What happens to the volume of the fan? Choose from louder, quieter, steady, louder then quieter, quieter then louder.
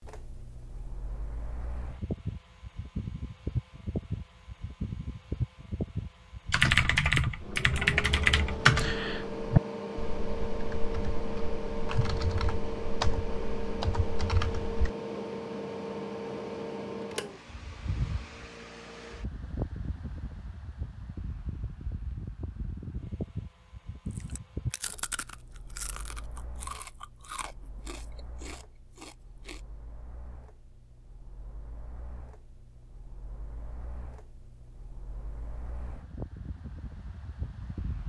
quieter.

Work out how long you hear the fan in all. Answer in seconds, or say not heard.
38 s.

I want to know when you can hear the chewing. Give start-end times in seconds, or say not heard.
24.1-29.6.